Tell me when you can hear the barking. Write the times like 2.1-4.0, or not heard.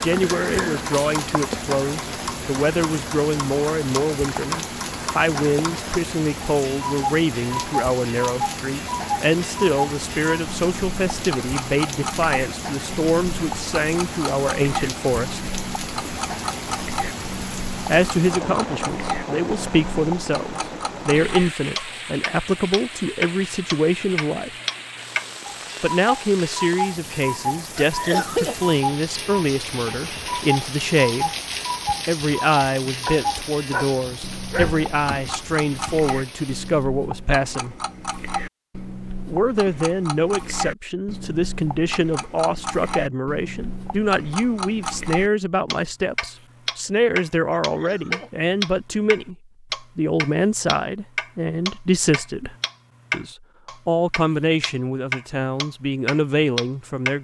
33.0-34.9.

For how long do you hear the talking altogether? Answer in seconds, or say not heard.
51 s.